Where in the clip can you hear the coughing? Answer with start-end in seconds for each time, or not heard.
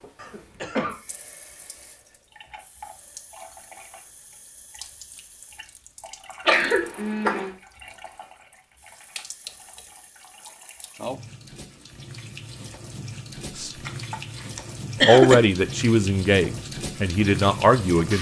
0.1-0.9, 6.5-7.5, 13.8-15.3.